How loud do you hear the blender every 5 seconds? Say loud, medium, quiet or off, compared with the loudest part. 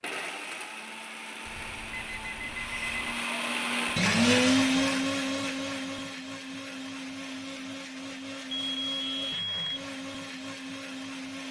loud, medium, medium.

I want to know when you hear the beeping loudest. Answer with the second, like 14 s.
9 s.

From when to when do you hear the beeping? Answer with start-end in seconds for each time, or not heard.
1.4-3.2, 8.6-9.6.